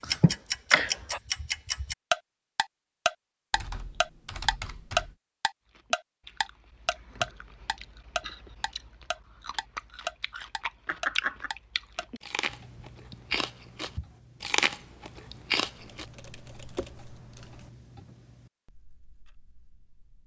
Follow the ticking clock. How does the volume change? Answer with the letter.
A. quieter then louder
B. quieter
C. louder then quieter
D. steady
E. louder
B.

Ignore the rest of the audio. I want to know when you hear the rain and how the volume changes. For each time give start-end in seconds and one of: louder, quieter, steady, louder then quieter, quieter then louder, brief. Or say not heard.
not heard.